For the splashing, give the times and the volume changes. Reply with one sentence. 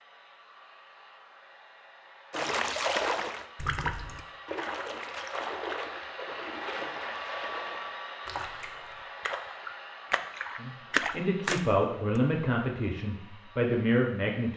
You can hear the splashing from 2.3 to 12.2 s, getting quieter then louder.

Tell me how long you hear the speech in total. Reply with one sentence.
You can hear the speech for 4 seconds altogether.